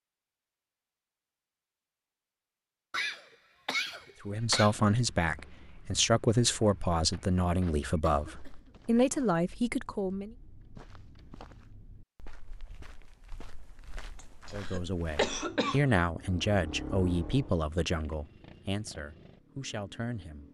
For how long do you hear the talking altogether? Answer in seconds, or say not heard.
12 s.